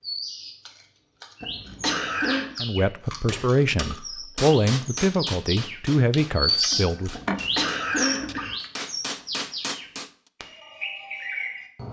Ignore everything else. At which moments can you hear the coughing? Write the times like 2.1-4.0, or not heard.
1.4-2.5, 7.1-8.6.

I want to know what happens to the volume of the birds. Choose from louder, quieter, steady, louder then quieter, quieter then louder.
louder then quieter.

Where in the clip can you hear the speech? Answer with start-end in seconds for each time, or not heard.
2.6-7.2.